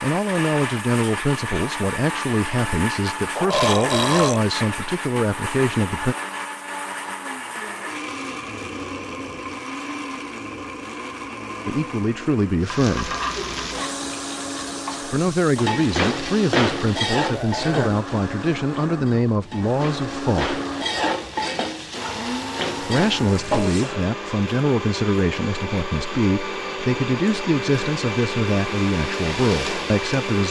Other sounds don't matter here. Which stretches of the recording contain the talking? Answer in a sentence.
The talking can be heard from 0.0 to 6.2 s, from 11.7 to 13.2 s, from 15.0 to 20.6 s and from 22.8 to 30.4 s.